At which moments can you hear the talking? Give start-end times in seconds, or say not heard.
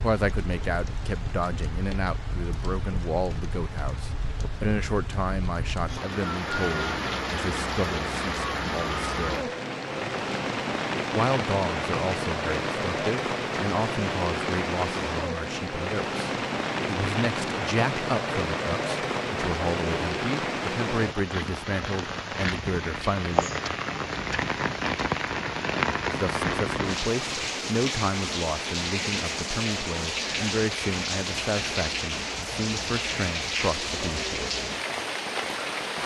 0.0-9.5, 11.1-23.5, 26.1-34.5.